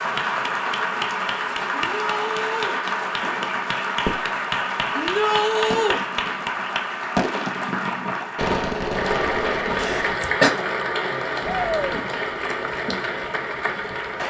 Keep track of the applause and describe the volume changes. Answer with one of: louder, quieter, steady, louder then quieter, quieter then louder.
steady.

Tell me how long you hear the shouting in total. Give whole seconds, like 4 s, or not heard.
3 s.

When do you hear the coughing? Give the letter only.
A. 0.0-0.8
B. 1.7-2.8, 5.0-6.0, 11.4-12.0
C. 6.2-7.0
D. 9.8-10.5
D.